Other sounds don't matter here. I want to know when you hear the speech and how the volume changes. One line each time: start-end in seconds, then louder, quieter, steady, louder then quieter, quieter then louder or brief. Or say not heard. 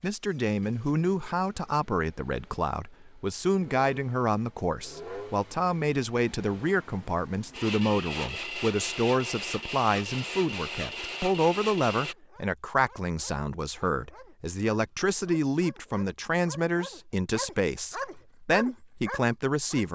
0.0-19.9 steady.